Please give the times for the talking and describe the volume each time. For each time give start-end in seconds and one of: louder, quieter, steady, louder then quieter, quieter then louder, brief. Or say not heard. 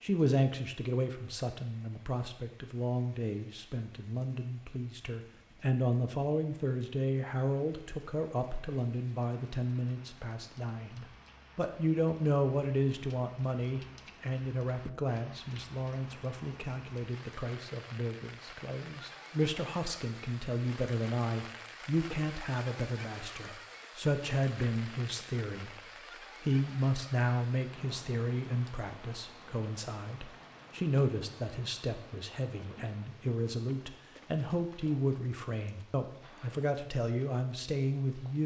0.0-38.4 steady.